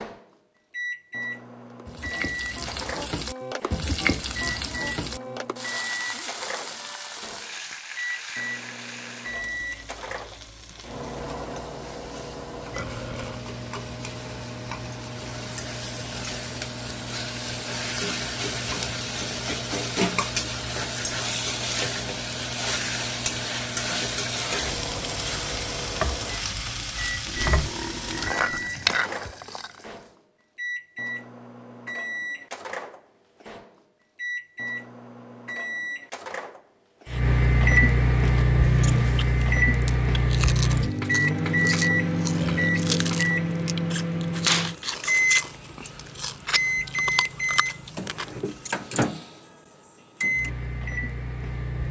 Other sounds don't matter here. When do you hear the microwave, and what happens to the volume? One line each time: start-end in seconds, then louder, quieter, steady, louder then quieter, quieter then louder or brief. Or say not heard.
0.0-51.8 louder.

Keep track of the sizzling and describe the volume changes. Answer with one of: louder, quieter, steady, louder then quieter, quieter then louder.
quieter then louder.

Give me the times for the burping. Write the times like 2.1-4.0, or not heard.
12.8-13.4, 27.2-28.7, 42.4-42.9.